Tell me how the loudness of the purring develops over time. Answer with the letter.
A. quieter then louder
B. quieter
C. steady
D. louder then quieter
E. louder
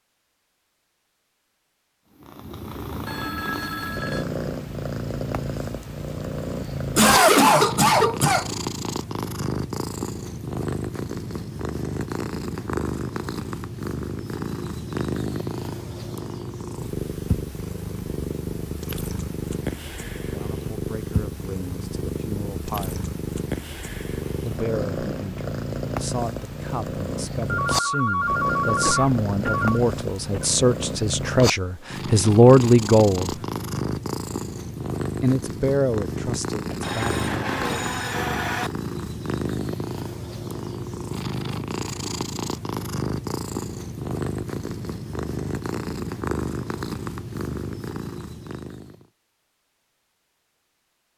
C.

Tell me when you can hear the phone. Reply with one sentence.
You can hear the phone from 3.0 to 4.2 s, from 27.4 to 29.8 s and from 36.8 to 38.7 s.